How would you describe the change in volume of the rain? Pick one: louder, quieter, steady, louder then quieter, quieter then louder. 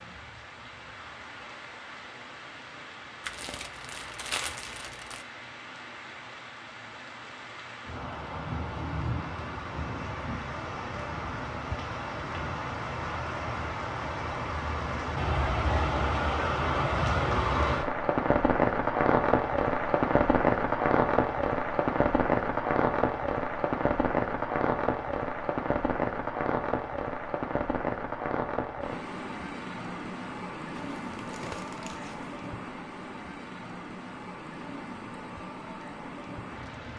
louder then quieter.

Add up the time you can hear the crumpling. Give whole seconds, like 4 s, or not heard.
4 s.